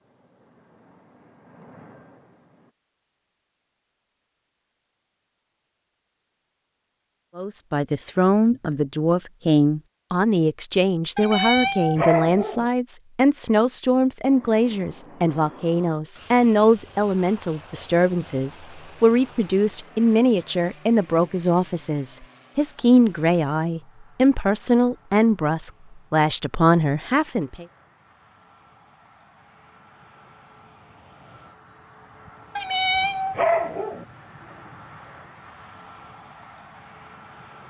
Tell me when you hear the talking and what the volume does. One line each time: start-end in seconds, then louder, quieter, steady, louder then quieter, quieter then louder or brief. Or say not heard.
7.3-27.6 steady.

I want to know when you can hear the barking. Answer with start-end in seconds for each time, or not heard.
11.2-12.7, 32.5-34.0.